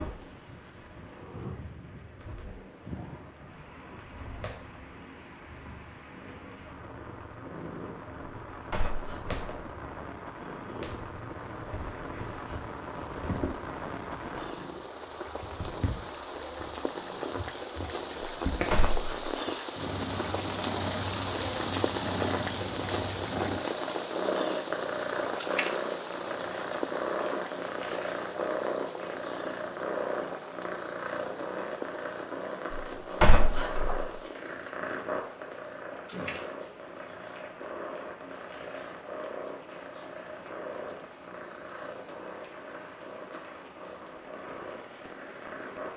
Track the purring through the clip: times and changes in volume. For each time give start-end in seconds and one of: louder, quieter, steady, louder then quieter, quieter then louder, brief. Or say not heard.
0.0-45.9 louder then quieter.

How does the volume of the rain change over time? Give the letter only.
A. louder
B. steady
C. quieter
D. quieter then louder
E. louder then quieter
E.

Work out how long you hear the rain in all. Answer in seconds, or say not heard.
46 s.